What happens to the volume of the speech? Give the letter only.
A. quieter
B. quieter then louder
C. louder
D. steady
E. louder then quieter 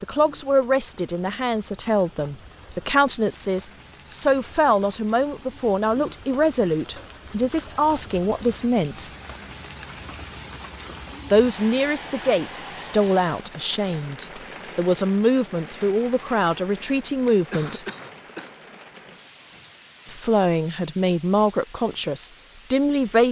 D.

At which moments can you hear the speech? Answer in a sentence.
You can hear the speech from 0.0 to 9.1 s, from 11.3 to 17.8 s and from 20.1 to 23.2 s.